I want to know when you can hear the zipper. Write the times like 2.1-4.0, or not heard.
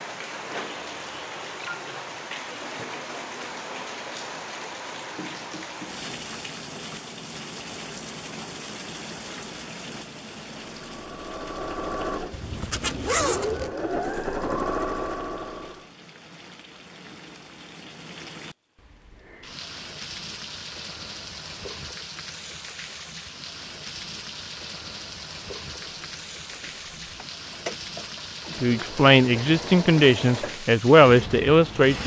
12.3-13.7.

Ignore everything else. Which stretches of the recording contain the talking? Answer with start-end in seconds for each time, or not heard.
28.6-32.0.